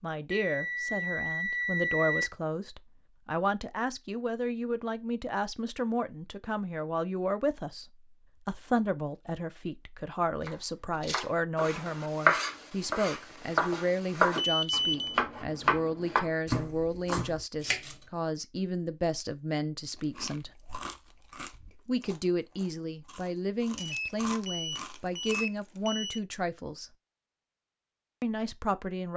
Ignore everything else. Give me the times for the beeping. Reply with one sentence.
You can hear the beeping from 0.3 to 2.3 s, from 14.3 to 15.2 s and from 23.8 to 26.2 s.